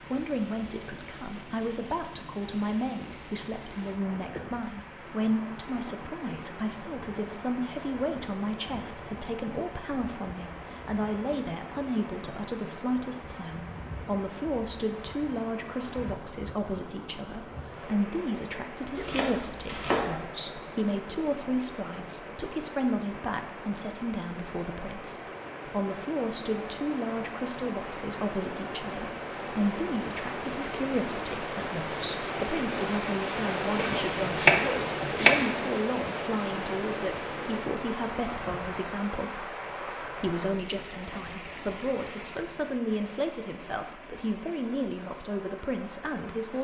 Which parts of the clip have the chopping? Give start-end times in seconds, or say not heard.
18.9-20.2, 33.8-35.5.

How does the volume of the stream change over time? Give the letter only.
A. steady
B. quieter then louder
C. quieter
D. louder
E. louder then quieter
E.